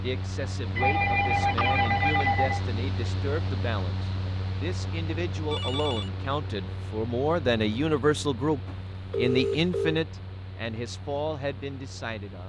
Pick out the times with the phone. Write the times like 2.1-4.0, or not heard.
0.8-2.6, 5.5-6.1, 8.7-10.0.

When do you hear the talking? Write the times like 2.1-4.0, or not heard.
0.0-12.4.